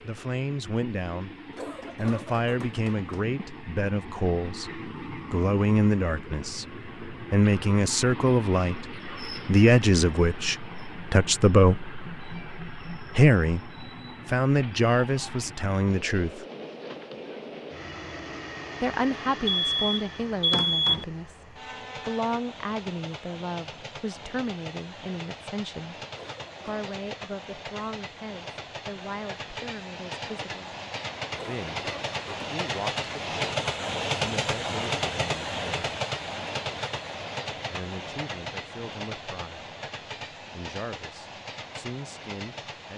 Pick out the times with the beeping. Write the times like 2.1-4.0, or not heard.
19.4-21.1.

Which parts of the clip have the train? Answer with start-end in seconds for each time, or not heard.
0.0-42.9.